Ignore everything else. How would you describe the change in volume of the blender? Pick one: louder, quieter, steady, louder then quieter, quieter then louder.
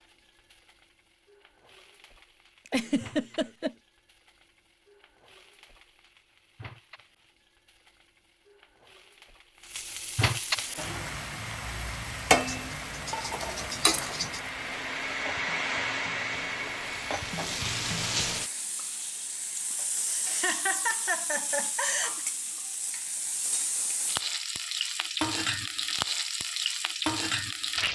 louder then quieter.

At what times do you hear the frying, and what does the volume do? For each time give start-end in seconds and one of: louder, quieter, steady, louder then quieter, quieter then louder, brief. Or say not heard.
0.0-27.9 louder.